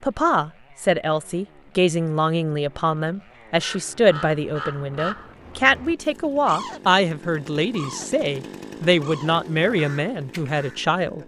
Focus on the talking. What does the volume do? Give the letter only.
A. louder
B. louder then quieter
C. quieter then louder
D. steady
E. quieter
D.